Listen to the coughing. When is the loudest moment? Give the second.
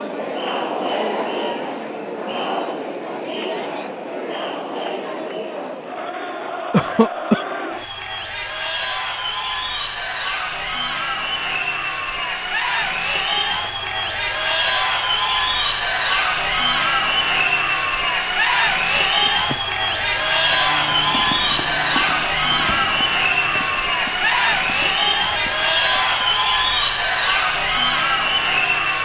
7 s.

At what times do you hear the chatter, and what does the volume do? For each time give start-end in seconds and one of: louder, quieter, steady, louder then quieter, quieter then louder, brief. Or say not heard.
0.0-28.9 louder.